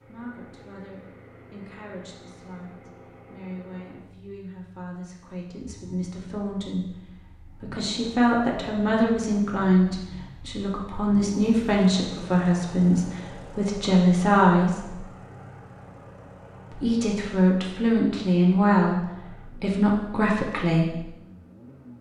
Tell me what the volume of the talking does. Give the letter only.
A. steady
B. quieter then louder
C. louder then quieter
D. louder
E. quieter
D.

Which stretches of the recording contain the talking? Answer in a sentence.
The talking can be heard from 0.0 to 15.0 s and from 16.7 to 21.0 s.